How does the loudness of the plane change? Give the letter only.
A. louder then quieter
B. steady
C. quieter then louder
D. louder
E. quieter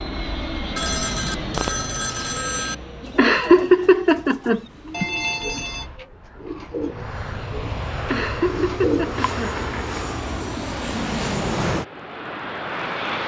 C.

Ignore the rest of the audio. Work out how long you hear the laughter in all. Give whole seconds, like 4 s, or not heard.
3 s.